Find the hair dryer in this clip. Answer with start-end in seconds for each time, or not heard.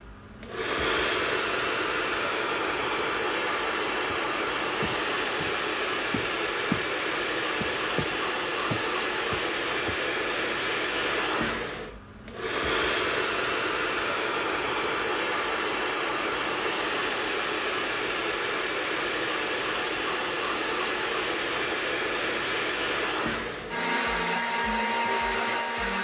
0.0-25.9.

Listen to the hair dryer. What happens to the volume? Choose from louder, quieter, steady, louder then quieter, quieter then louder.
steady.